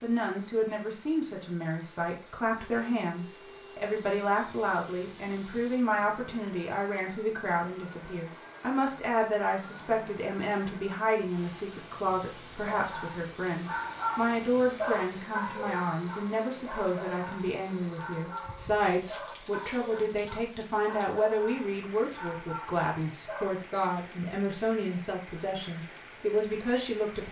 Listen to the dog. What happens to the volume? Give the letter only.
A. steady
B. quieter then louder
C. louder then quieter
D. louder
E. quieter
E.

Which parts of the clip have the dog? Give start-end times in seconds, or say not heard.
12.7-23.6.